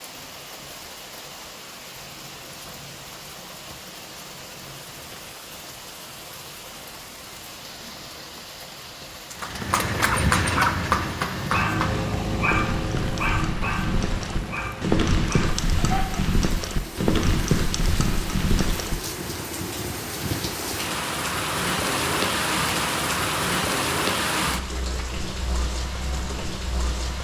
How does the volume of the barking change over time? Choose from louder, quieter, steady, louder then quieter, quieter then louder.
quieter.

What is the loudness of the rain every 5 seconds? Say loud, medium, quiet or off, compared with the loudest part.
quiet, quiet, quiet, medium, loud, medium.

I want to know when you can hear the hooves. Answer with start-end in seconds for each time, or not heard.
9.4-18.9.